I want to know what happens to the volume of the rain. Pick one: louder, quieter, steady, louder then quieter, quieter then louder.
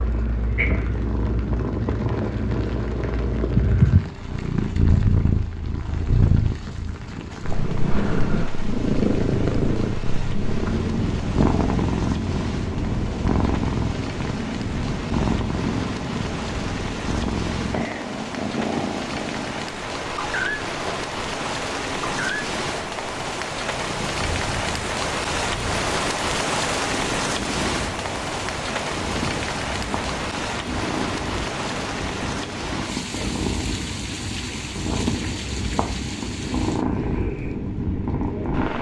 louder then quieter.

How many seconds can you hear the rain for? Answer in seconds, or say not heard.
39 s.